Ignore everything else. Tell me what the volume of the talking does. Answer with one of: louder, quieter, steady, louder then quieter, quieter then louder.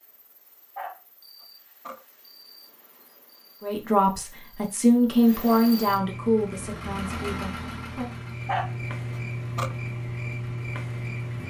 louder then quieter.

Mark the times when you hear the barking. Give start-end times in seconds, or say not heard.
0.8-2.0, 8.4-9.8.